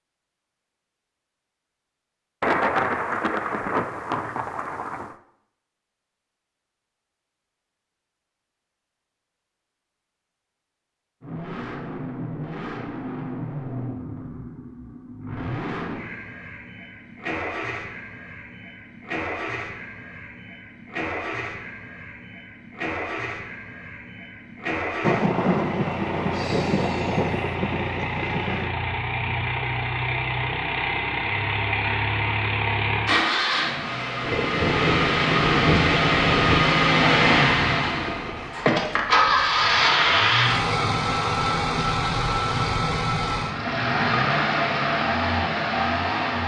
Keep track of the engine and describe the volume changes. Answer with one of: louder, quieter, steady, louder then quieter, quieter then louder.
louder.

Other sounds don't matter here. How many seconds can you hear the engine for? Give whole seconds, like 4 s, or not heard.
35 s.